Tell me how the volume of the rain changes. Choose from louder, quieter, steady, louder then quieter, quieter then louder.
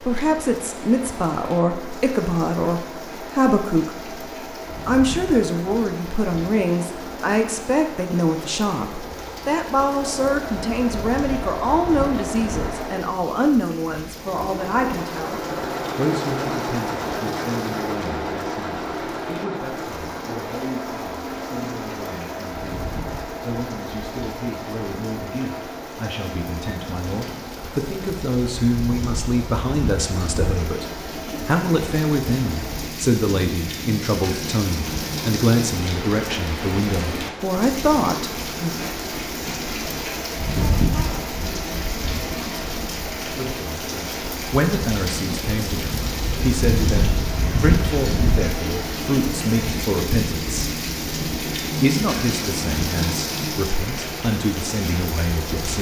louder.